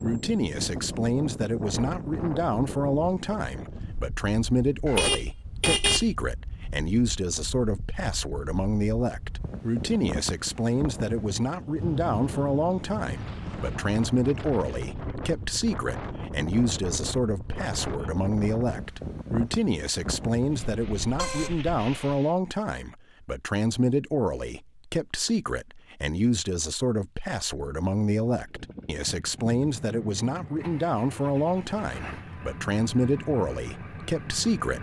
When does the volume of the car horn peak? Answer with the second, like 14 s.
6 s.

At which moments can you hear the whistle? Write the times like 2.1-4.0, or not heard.
not heard.